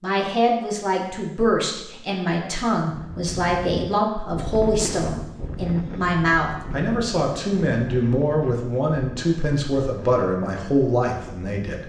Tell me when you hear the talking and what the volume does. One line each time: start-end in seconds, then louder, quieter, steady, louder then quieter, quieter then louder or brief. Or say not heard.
0.0-11.8 steady.